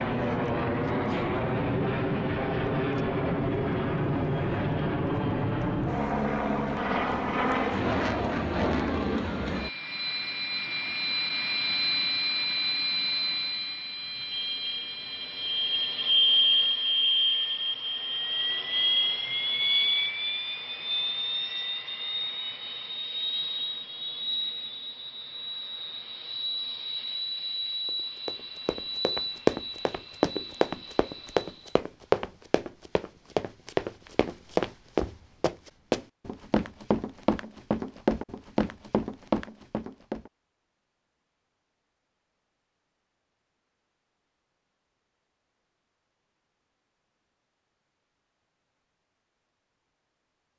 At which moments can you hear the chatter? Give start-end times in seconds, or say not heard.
not heard.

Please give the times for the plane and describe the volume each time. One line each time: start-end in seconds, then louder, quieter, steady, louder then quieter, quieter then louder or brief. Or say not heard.
0.0-31.8 quieter.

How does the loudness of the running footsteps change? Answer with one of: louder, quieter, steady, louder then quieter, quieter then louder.
steady.